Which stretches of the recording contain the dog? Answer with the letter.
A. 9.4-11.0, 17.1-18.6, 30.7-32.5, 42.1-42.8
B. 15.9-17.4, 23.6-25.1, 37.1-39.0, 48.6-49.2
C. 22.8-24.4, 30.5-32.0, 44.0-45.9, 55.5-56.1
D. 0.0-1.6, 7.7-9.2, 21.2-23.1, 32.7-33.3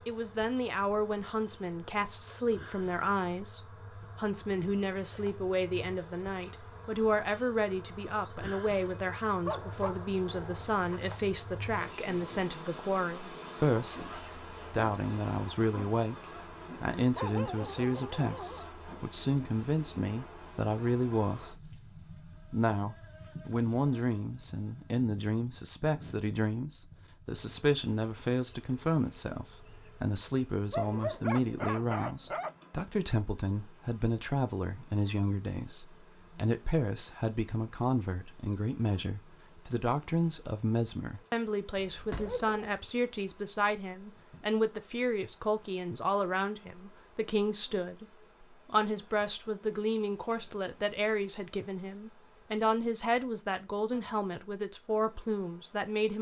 A.